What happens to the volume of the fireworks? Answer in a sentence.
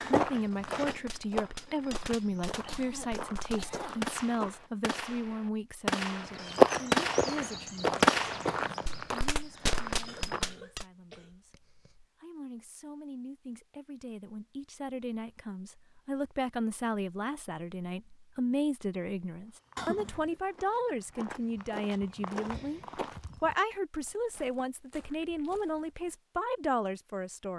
The loudness of the fireworks goes up, then down.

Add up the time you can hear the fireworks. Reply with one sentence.
You can hear the fireworks for 10 seconds altogether.